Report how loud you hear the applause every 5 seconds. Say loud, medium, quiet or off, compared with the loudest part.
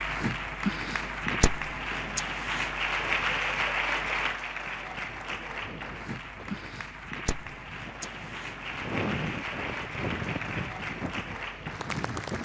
loud, medium, medium.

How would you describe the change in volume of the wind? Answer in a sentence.
The volume of the wind goes up.